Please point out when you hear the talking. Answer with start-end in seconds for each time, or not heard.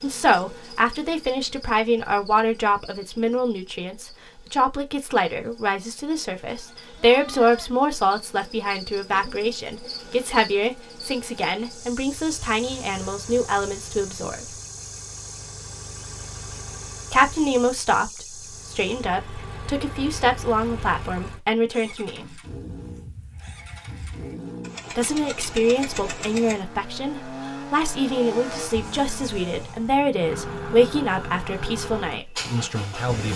0.0-14.4, 17.1-22.2, 24.9-33.3.